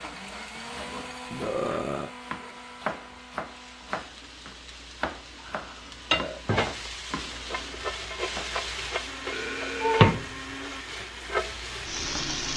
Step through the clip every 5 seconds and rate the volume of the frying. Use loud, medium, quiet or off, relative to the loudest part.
quiet, medium, loud.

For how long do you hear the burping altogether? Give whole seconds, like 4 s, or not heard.
3 s.